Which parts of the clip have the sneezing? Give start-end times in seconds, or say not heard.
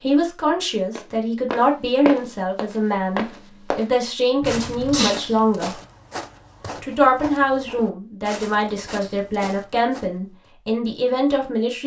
4.4-5.2.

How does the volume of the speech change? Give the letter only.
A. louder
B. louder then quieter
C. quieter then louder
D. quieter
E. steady
E.